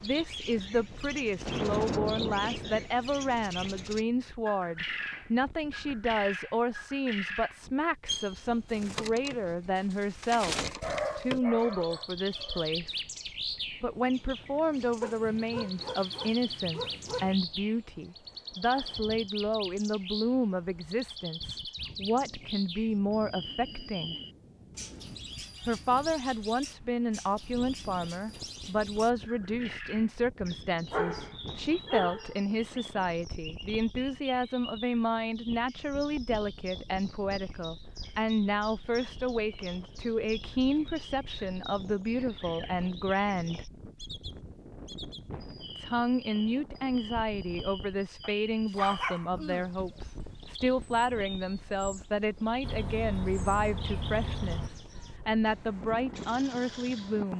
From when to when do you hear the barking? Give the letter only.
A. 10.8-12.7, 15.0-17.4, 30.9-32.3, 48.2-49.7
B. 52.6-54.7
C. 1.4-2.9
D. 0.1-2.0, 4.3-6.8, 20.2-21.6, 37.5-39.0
A.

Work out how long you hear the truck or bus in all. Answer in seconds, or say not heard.
2 s.